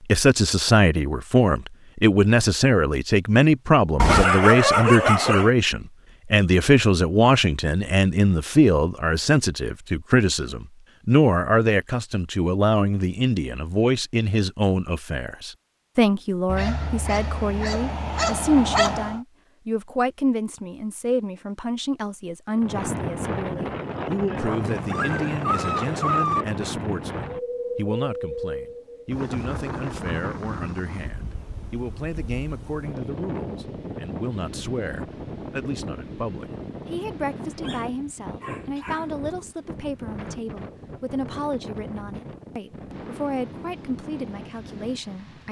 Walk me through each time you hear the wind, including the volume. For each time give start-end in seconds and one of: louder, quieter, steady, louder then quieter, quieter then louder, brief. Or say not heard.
22.6-45.4 quieter.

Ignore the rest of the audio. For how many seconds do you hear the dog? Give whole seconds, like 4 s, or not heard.
8 s.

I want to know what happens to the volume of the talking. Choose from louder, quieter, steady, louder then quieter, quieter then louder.
quieter.